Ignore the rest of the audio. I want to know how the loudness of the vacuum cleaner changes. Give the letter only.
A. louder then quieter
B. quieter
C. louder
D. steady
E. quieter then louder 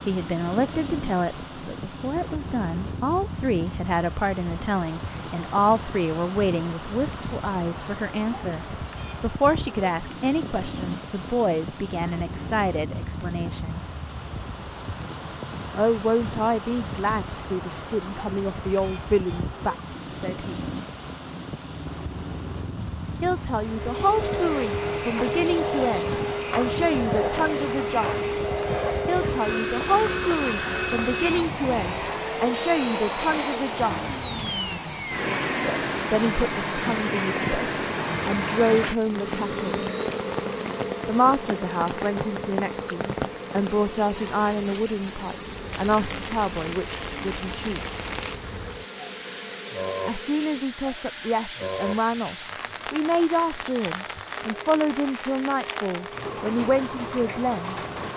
B.